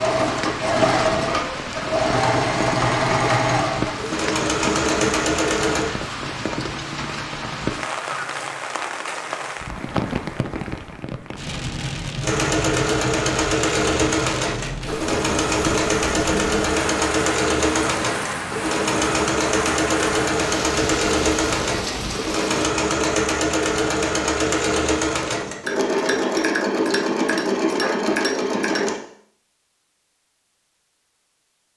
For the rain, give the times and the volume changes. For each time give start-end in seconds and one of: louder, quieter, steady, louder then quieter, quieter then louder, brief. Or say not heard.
0.0-22.7 steady.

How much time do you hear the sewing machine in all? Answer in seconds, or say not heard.
23 s.